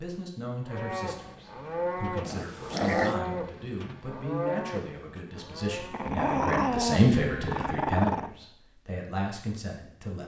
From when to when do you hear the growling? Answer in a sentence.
The growling can be heard from 2.2 to 3.2 s and from 5.9 to 8.3 s.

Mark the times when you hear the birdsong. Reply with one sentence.
You can't hear the birdsong here.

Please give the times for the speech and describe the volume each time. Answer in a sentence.
You can hear the speech from 0.0 to 10.2 s, getting louder then quieter.